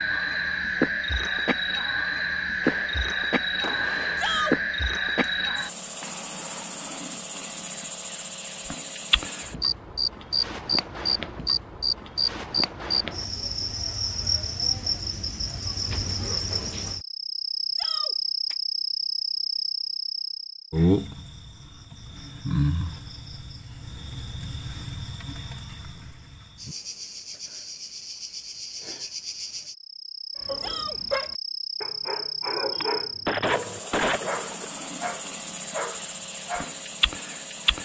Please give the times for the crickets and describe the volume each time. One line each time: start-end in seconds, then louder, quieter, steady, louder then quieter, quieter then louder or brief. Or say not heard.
0.0-37.8 quieter.